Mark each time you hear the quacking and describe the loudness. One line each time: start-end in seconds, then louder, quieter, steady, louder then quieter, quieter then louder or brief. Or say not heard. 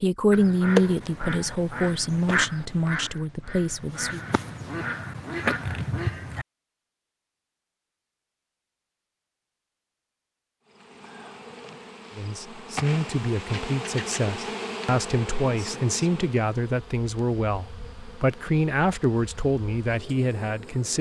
0.3-6.5 quieter then louder.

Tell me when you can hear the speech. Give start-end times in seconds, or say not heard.
0.0-4.2, 12.2-20.9.